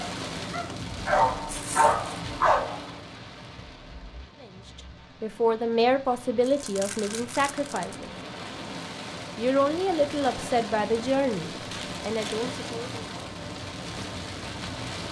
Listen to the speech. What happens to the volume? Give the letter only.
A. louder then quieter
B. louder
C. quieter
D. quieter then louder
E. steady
C.